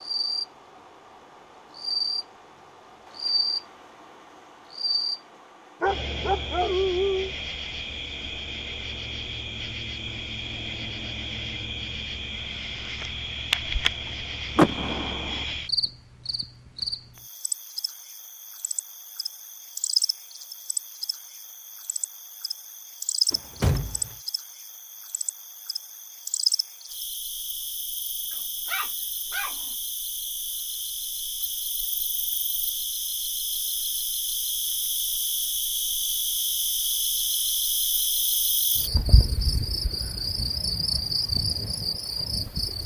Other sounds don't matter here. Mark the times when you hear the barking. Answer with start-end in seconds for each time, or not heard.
5.8-7.3, 28.3-29.6.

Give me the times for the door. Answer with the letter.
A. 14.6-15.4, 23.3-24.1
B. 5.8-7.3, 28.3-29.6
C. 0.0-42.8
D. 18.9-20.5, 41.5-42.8
A.